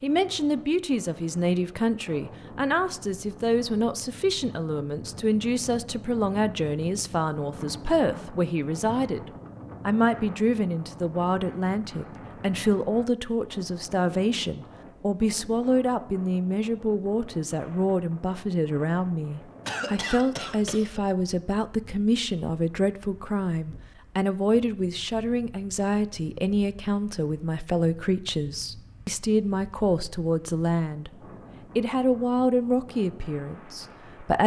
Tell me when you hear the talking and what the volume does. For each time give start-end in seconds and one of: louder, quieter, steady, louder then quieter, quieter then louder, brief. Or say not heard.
0.0-9.2 steady
9.8-31.1 steady
31.8-34.4 brief.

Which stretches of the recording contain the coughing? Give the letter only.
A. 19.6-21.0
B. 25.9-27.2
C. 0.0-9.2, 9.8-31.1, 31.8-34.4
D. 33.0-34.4
A.